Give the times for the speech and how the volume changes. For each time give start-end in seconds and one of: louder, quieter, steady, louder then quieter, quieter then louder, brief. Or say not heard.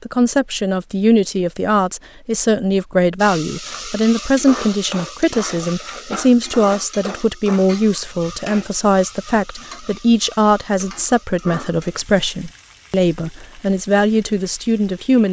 0.0-15.2 steady.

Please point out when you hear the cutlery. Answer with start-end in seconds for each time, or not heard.
not heard.